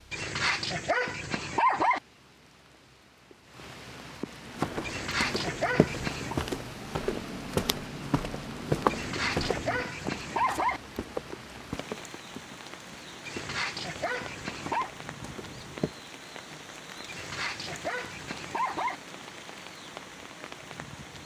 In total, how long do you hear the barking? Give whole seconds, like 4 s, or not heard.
9 s.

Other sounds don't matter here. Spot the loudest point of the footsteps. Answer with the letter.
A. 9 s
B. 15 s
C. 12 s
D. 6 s
A.